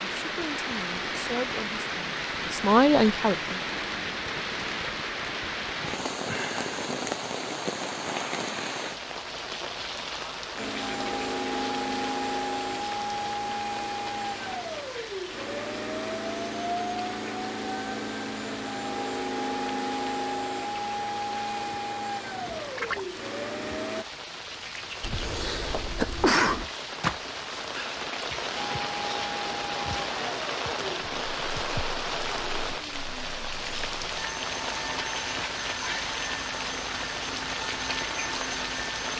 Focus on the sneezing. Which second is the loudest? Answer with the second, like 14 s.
26 s.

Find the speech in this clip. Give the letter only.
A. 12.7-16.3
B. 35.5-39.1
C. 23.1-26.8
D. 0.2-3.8
D.